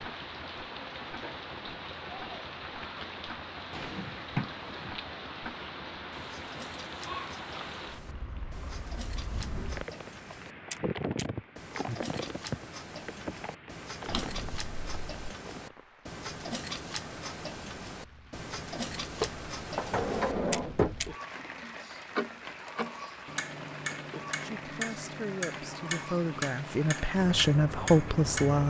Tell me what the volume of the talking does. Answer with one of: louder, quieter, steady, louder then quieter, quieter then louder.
louder.